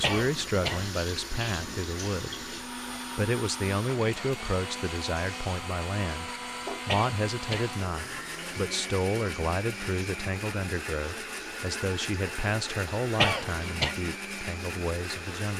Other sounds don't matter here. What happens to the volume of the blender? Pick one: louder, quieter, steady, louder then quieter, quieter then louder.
steady.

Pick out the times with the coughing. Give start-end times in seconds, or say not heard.
0.0-0.9, 6.8-7.8, 13.2-13.9.